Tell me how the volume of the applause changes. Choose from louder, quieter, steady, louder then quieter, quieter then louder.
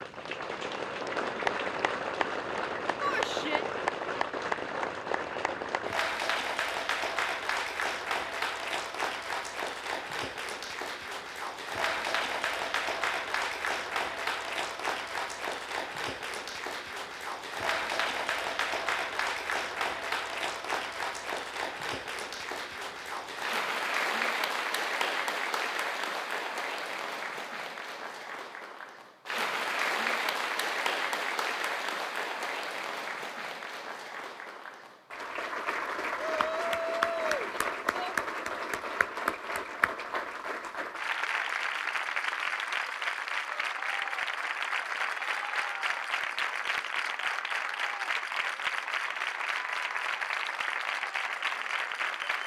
steady.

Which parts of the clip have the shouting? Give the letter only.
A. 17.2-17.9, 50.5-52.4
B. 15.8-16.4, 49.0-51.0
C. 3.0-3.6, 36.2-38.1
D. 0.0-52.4
C.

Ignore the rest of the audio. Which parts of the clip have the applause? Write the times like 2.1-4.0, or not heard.
0.0-52.4.